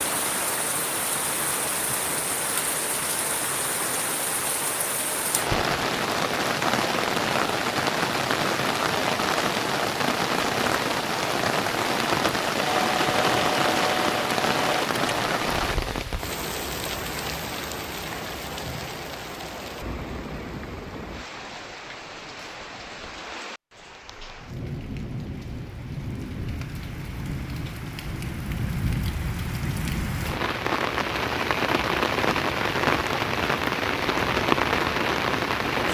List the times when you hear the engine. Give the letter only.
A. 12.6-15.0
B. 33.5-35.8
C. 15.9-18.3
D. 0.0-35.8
A.